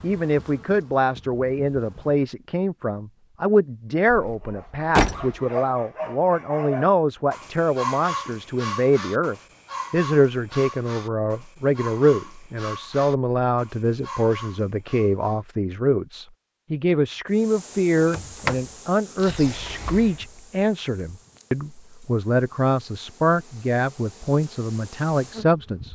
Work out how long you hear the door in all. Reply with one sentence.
You can hear the door for 4 seconds altogether.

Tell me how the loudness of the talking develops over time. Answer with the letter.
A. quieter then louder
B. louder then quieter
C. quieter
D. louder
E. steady
E.